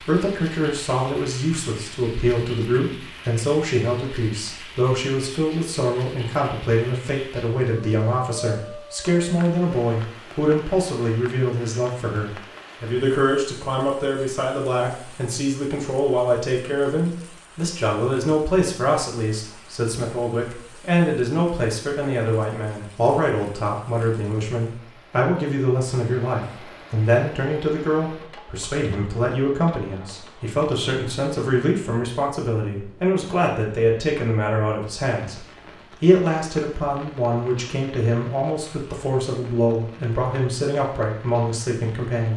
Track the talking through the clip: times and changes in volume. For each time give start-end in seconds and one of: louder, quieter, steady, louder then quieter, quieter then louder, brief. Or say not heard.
0.0-42.3 steady.